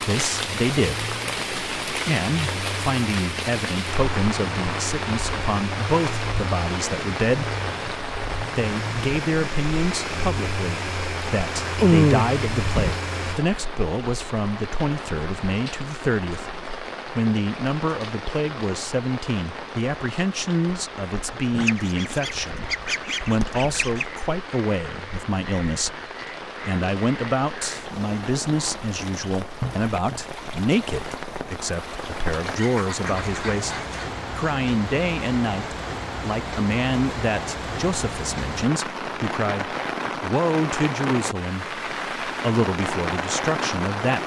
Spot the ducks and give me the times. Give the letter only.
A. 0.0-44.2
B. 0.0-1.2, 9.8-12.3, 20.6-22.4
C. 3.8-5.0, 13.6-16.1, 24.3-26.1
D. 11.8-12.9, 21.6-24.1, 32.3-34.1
D.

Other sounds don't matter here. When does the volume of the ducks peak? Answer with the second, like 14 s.
12 s.